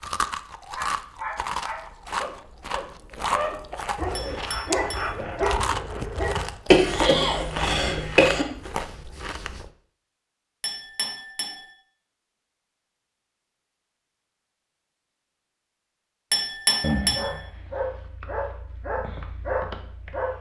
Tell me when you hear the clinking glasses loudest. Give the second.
17 s.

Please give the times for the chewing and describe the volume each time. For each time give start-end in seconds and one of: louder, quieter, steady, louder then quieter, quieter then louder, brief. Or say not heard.
0.0-9.7 steady.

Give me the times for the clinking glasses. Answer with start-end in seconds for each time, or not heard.
4.2-5.2, 10.6-11.7, 16.3-17.4.